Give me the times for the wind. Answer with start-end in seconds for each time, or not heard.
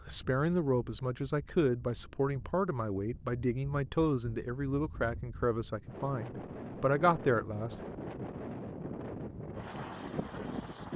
0.0-10.9.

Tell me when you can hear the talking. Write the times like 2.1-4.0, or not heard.
0.1-7.8.